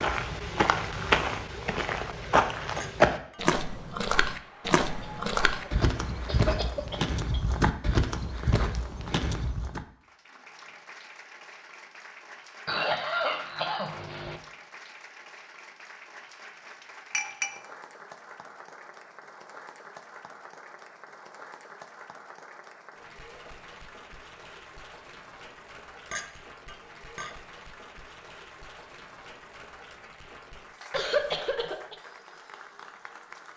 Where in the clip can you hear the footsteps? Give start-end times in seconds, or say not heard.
0.0-9.8.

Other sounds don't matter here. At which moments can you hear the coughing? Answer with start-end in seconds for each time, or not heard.
5.0-7.4, 12.7-14.4, 30.9-31.9.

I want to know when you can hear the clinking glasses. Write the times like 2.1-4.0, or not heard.
2.8-3.4, 17.1-17.6, 26.1-27.4.